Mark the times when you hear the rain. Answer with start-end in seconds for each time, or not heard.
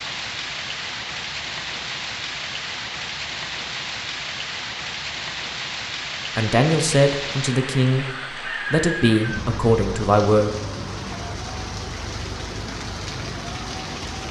0.0-14.2.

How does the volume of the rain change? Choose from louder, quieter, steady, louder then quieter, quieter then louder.
steady.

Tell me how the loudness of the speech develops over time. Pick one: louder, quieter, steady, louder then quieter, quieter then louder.
quieter then louder.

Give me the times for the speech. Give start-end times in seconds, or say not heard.
6.3-10.5.